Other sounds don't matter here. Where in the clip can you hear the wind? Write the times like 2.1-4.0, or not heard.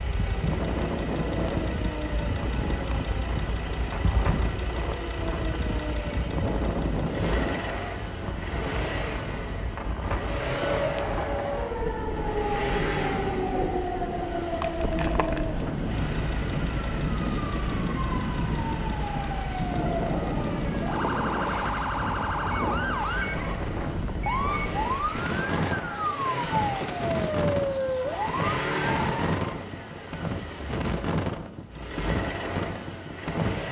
0.2-33.6.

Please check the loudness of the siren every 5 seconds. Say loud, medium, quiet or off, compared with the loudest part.
medium, medium, loud, loud, loud, loud, off.